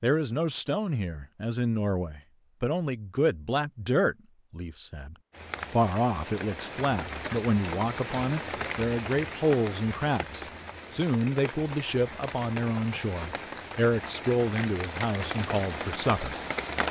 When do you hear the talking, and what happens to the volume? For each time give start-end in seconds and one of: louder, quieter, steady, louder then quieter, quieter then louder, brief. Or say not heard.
0.0-16.4 steady.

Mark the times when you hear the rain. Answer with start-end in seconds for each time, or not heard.
5.3-16.8.